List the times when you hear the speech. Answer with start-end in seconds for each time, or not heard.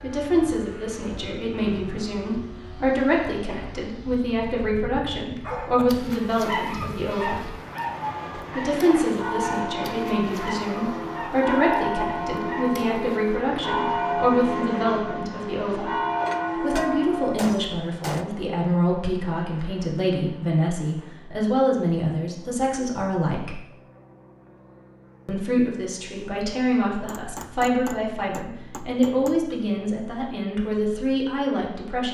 0.0-7.5, 8.6-15.9, 16.6-23.6, 25.2-32.0.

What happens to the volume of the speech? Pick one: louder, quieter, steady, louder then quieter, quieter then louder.
steady.